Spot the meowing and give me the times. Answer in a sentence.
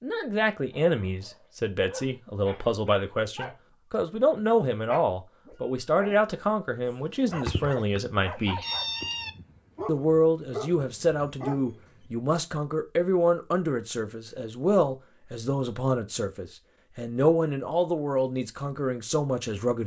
The meowing can be heard from 7.3 to 9.3 s.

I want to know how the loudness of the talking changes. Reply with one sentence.
The loudness of the talking stays about the same.